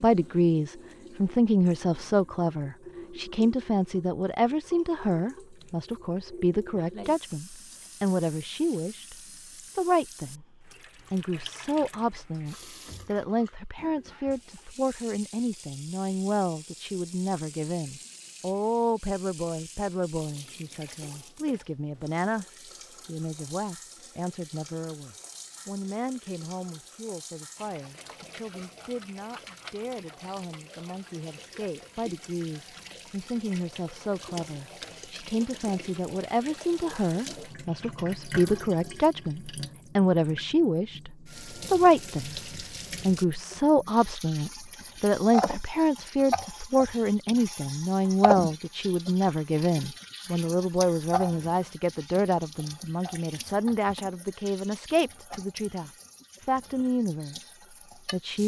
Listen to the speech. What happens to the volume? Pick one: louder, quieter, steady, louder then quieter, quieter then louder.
quieter then louder.